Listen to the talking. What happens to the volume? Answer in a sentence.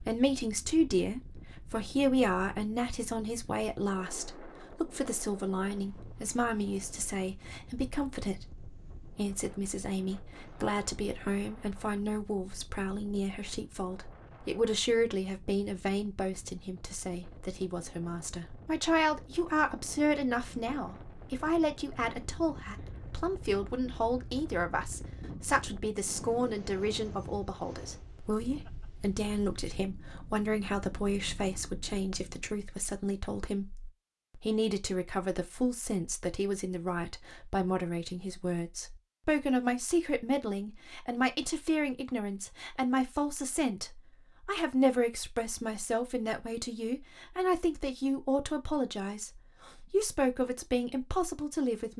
The loudness of the talking stays about the same.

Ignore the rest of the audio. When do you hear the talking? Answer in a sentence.
You can hear the talking from 0.0 to 51.9 s.